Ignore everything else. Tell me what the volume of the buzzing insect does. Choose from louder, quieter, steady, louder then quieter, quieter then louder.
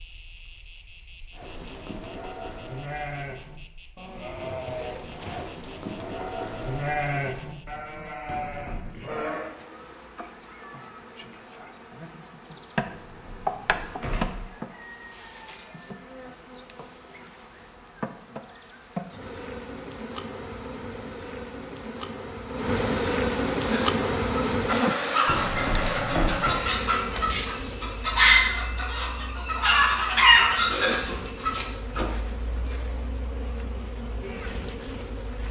louder then quieter.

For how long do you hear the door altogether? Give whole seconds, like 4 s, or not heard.
4 s.